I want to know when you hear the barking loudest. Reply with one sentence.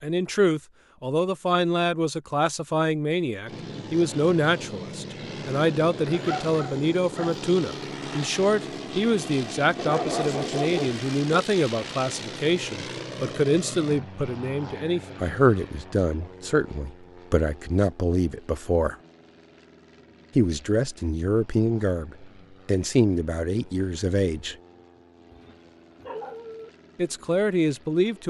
The volume of the barking peaks at 10 seconds.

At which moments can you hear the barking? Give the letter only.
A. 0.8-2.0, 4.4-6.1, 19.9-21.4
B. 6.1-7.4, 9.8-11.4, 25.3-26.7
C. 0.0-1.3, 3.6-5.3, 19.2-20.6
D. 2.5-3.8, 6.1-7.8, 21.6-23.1
B.